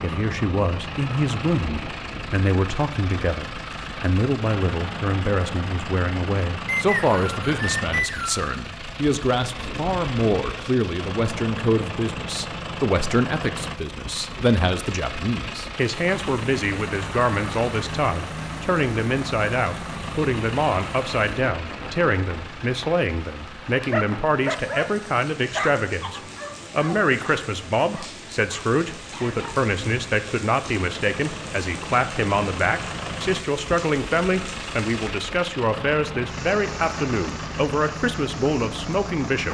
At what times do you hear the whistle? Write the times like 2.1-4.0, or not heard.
6.7-8.4.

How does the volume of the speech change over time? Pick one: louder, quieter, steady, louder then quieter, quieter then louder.
steady.